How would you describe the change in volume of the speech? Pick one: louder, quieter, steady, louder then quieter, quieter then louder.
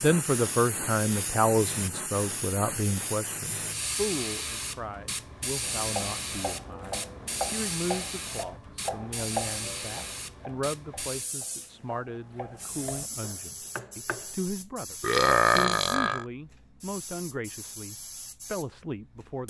quieter.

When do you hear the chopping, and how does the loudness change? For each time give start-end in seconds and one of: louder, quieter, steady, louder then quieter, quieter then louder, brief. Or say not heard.
5.6-14.3 quieter then louder.